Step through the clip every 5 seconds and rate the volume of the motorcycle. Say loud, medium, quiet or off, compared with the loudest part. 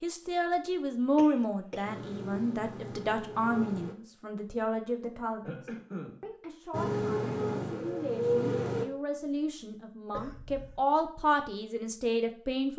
medium, loud, off.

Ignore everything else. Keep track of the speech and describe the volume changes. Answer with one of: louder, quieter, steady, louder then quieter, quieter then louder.
quieter then louder.